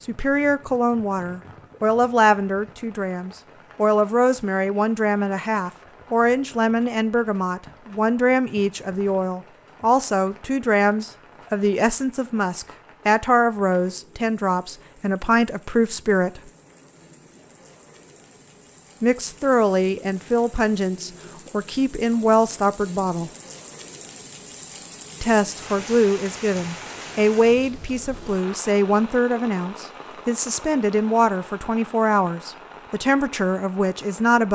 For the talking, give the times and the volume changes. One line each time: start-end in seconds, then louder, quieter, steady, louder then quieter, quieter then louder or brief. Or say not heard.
0.0-16.5 steady
19.0-23.3 quieter then louder
25.2-34.5 steady.